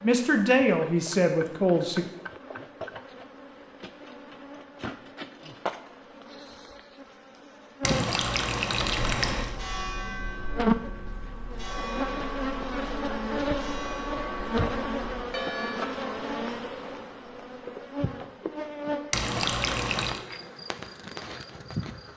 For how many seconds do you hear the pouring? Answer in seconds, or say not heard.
3 s.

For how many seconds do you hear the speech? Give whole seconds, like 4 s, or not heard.
2 s.